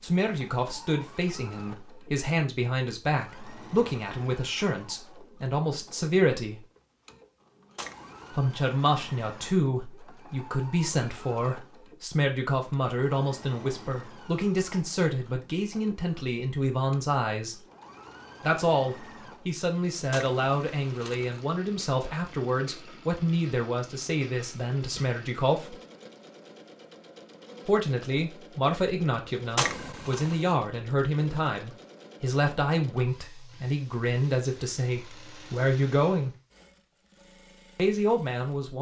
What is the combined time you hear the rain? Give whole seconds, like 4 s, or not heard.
not heard.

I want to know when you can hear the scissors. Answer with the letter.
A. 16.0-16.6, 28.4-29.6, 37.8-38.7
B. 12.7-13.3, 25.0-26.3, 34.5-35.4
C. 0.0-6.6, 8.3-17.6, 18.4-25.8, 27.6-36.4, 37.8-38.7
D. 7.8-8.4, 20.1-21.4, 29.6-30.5
D.